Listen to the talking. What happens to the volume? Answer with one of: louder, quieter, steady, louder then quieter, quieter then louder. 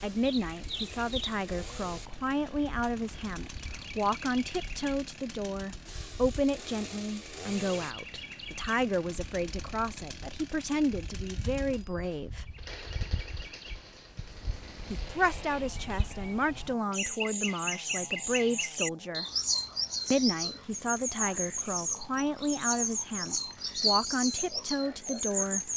steady.